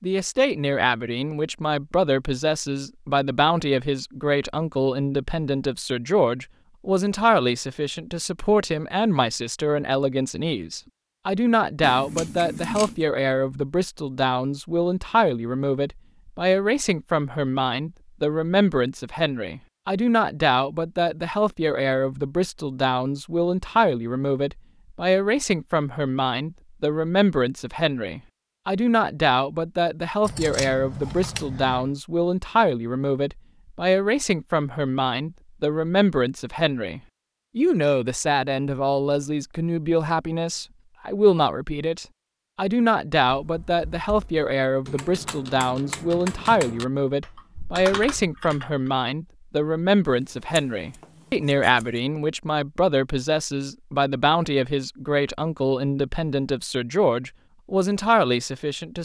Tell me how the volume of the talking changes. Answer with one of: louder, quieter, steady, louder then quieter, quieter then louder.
steady.